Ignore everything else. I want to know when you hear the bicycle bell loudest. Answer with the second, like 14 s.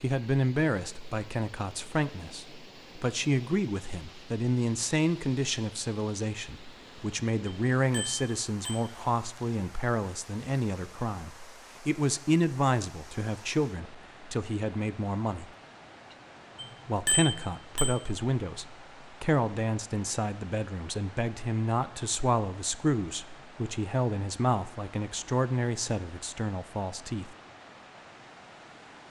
17 s.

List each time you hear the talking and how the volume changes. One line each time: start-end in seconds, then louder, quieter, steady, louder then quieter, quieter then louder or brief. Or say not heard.
0.0-15.5 steady
16.9-27.4 steady.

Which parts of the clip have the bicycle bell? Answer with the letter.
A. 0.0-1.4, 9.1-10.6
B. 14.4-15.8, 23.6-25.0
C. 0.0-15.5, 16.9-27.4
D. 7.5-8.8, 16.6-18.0
D.